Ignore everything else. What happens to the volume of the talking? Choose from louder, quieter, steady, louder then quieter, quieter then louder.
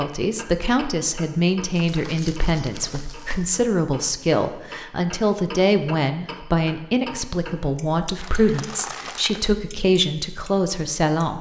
steady.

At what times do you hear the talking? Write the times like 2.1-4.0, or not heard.
0.0-11.3.